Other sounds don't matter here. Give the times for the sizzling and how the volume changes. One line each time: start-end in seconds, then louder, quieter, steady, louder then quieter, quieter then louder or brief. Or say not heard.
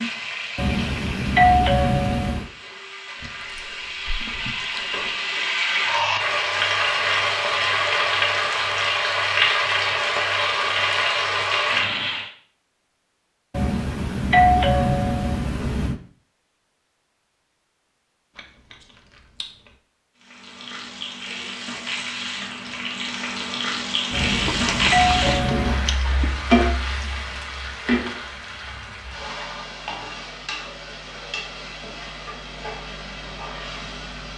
0.0-12.3 louder
20.1-34.3 louder then quieter.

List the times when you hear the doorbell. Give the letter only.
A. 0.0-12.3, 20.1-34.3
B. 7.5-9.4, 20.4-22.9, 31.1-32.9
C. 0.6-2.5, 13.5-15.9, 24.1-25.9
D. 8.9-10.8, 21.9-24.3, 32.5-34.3
C.